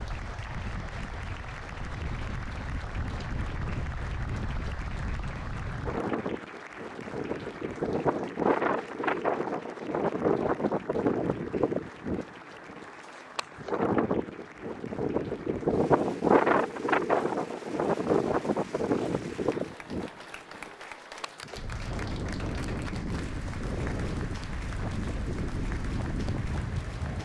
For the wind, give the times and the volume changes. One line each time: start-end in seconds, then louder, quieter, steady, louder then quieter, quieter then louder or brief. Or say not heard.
0.0-27.2 louder then quieter.